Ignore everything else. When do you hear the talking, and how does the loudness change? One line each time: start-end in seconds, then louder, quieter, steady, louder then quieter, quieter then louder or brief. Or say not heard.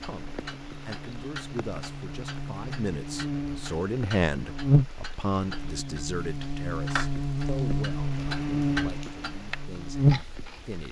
0.0-10.8 louder then quieter.